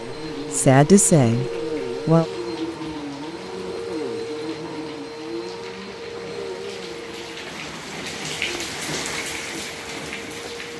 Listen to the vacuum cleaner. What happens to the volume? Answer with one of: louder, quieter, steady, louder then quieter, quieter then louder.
quieter.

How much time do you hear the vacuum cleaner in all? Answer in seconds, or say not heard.
11 s.